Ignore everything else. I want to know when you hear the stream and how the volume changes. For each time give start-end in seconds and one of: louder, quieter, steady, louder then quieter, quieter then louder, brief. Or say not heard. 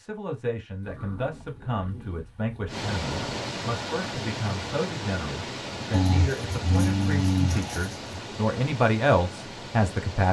2.6-10.2 quieter.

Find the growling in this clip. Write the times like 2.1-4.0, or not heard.
0.8-3.2, 5.9-8.2.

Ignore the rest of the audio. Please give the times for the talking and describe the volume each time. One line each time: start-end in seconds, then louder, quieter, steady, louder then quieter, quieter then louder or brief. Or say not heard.
0.0-10.2 louder.